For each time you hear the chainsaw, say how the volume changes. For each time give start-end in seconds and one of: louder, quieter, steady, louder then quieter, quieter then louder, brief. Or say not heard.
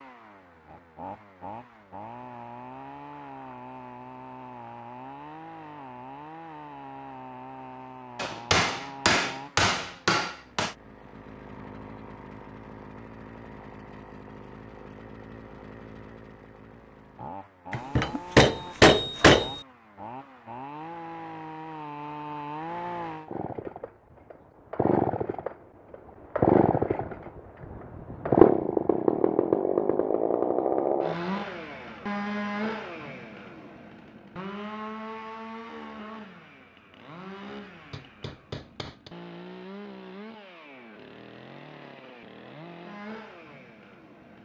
0.0-44.4 louder then quieter.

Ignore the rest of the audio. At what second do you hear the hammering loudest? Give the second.
19 s.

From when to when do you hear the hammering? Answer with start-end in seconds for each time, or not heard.
8.2-10.7, 17.7-19.6, 37.9-39.1.